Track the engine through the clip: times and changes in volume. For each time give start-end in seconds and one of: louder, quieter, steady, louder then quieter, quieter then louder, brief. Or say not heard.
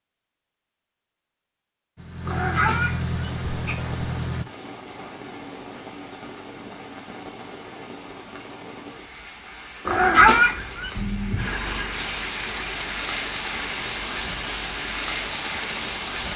1.9-4.5 brief
10.9-16.3 quieter.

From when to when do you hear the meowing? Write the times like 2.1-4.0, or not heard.
2.2-3.8, 9.8-11.0.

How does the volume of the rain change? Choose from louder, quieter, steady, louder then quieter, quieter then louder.
louder.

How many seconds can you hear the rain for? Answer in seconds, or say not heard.
13 s.